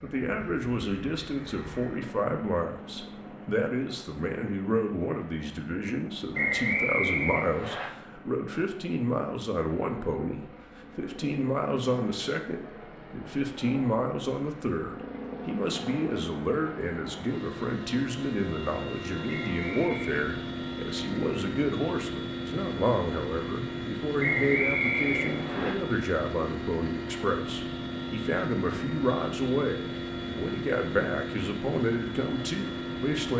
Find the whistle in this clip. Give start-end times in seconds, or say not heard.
6.3-7.8, 19.3-20.2, 24.1-25.8.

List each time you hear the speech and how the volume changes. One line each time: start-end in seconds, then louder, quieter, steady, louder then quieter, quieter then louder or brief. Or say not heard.
0.0-33.3 steady.